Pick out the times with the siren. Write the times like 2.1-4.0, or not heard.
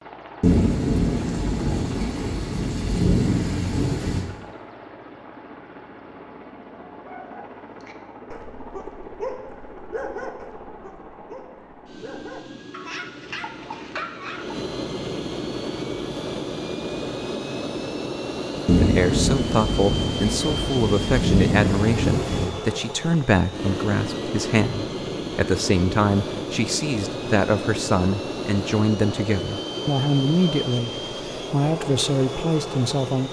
not heard.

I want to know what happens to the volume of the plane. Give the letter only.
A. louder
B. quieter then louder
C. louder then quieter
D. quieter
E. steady
A.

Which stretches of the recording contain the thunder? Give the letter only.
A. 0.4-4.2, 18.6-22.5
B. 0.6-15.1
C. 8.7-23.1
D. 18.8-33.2
A.